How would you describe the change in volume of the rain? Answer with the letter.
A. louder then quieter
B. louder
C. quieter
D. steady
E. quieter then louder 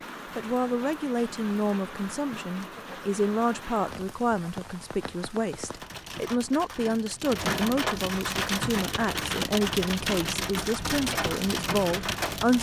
B.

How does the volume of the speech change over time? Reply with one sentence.
The loudness of the speech stays about the same.